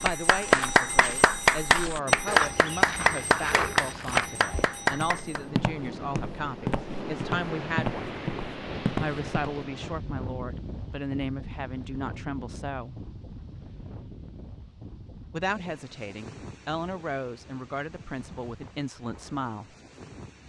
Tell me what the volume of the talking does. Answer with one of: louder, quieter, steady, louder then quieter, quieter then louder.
steady.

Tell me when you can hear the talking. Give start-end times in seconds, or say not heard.
0.0-8.1, 9.0-13.1, 15.3-19.8.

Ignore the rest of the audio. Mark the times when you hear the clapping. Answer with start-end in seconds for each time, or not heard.
0.0-5.4.